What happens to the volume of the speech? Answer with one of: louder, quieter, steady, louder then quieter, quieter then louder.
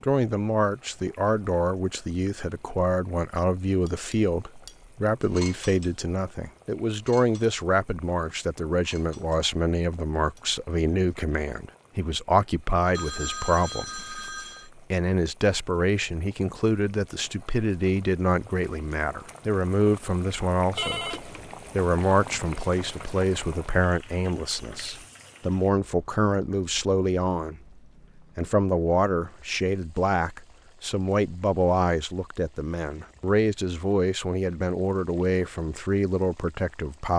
steady.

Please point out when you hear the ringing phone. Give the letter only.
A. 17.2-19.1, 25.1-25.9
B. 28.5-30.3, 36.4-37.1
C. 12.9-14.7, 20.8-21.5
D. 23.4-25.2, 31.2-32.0
C.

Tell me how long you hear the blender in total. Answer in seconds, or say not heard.
not heard.